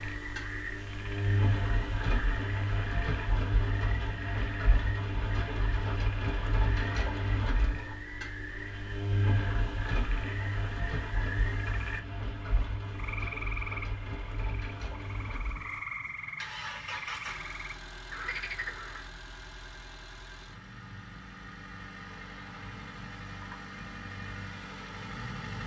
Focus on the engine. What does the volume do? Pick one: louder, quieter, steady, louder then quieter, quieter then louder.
quieter.